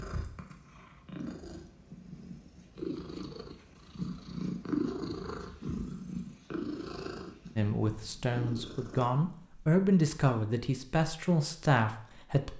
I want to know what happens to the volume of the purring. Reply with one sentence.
The loudness of the purring goes up, then down.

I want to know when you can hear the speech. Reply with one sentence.
You can hear the speech from 7.5 to 12.5 s.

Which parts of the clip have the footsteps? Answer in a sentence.
The footsteps can't be heard in this clip.